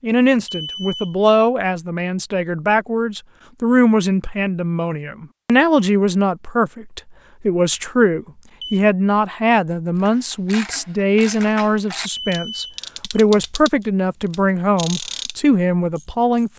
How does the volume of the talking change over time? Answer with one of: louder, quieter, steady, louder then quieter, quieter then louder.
steady.